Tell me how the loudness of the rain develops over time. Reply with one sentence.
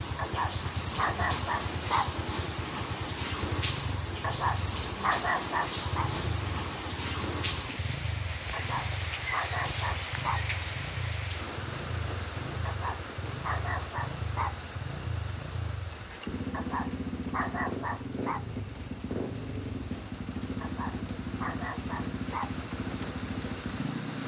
The loudness of the rain goes down.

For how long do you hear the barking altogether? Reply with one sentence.
The barking can be heard for 12 seconds in total.